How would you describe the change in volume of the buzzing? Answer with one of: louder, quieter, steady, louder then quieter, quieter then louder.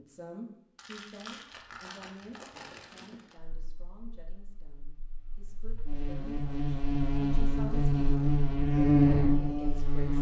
louder.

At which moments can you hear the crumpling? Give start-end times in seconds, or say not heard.
0.8-3.4.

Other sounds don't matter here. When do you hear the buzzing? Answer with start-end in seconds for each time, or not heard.
3.5-10.1.